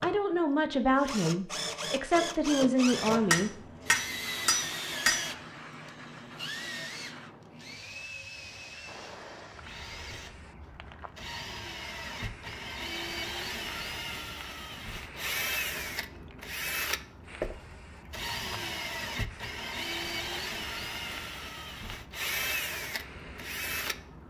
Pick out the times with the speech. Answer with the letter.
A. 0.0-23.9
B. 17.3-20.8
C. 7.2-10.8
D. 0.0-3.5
D.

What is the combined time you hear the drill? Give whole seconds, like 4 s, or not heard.
24 s.